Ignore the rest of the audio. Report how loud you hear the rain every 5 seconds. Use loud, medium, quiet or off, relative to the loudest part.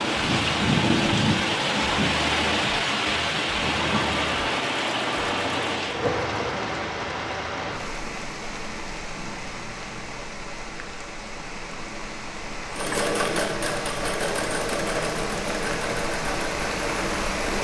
loud, medium, medium, medium.